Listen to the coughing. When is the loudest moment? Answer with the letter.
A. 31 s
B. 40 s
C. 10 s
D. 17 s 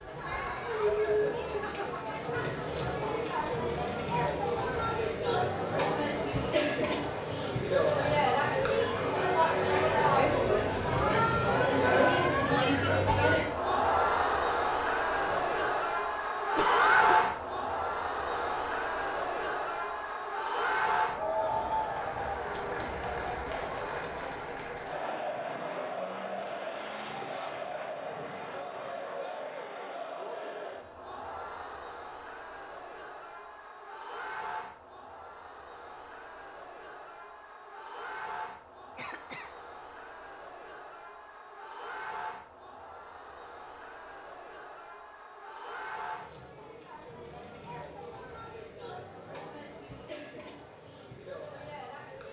D.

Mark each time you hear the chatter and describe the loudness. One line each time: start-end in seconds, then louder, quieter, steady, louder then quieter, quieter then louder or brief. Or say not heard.
0.0-52.2 quieter.